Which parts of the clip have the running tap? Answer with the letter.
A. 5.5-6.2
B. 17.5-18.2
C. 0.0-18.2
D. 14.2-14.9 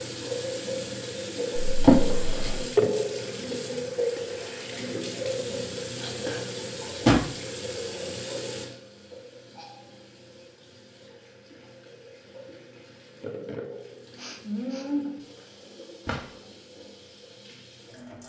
C.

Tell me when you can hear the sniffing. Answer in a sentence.
You can hear the sniffing from 14.2 to 14.9 s.